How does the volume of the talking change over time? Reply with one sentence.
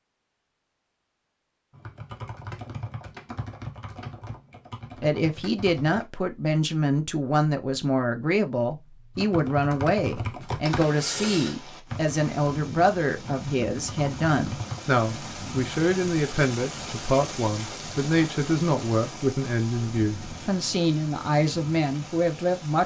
The volume of the talking stays about the same.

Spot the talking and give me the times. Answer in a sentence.
The talking can be heard from 5.0 to 22.8 s.